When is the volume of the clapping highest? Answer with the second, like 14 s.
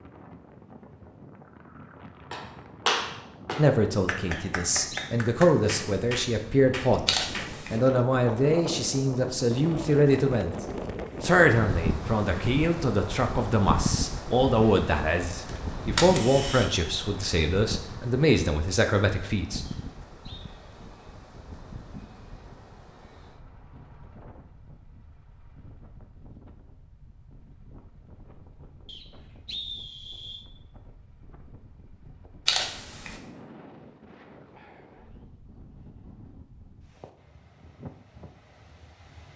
3 s.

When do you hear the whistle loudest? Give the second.
30 s.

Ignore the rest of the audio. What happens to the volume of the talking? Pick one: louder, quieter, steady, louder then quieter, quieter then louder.
steady.